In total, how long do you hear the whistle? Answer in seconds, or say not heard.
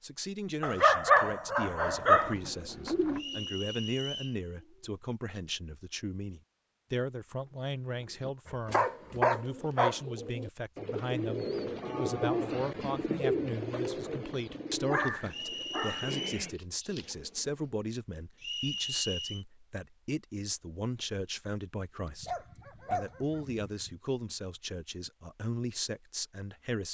3 s.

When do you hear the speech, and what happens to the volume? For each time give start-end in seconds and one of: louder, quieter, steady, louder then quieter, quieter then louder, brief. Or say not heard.
0.0-26.9 steady.